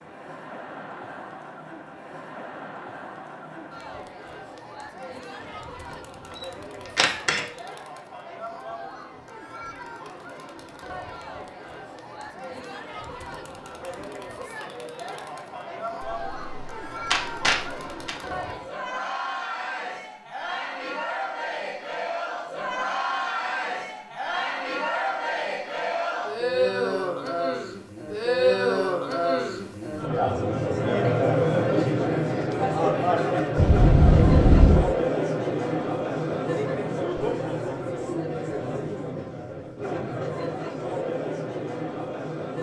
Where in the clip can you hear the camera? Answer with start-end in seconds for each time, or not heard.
7.0-7.4, 16.0-18.1, 33.5-34.9.